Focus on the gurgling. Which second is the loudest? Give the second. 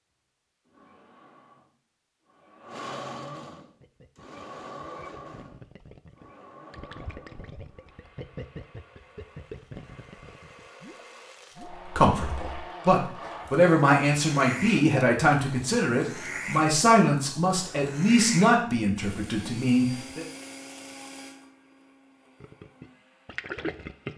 24 s.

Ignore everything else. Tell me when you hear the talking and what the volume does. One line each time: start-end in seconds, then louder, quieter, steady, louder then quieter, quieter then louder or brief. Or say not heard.
11.8-20.2 steady.